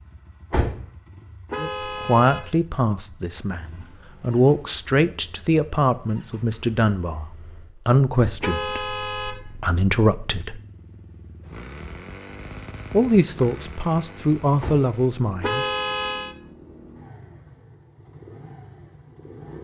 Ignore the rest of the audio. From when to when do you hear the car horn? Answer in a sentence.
The car horn can be heard from 1.4 to 2.5 s, from 8.4 to 9.4 s and from 15.4 to 16.4 s.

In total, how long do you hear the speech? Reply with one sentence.
The speech can be heard for 12 seconds in total.